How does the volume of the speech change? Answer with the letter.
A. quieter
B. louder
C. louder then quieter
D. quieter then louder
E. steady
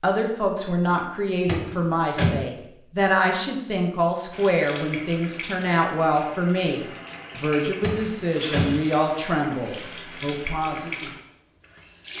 E.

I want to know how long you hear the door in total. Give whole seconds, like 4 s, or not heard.
2 s.